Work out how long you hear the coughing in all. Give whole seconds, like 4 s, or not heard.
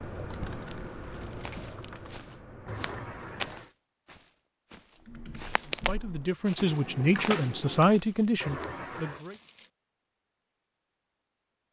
2 s.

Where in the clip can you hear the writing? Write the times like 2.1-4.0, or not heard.
not heard.